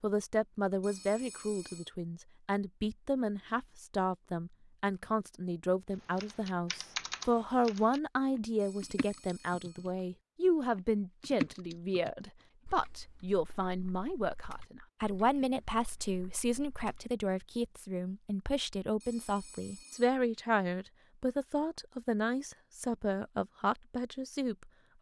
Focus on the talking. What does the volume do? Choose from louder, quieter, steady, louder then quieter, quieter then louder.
steady.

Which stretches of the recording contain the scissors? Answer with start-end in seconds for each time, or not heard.
not heard.